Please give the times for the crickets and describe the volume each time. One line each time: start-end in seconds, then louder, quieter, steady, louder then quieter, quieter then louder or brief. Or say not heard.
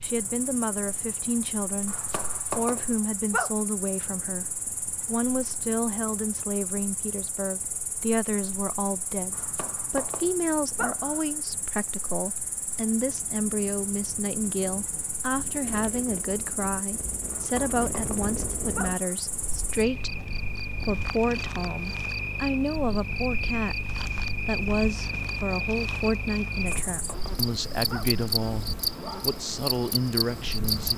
0.0-30.9 louder.